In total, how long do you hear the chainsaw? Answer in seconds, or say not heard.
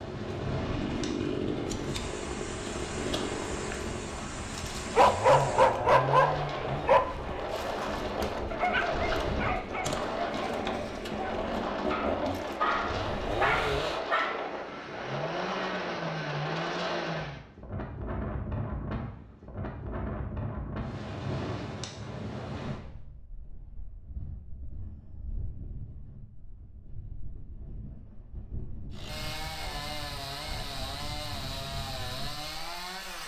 22 s.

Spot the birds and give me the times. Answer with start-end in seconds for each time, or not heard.
not heard.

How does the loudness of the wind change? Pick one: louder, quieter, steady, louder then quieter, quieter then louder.
quieter.